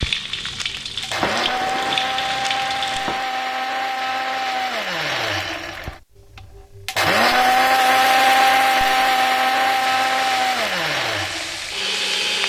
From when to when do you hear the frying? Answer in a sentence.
You can hear the frying from 0.0 to 3.2 s and from 9.8 to 12.4 s.